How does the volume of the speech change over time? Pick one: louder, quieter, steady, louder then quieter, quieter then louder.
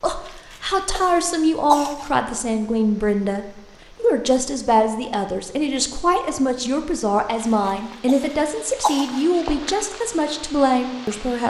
steady.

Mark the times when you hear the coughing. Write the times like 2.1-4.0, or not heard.
0.2-2.1, 7.4-9.2.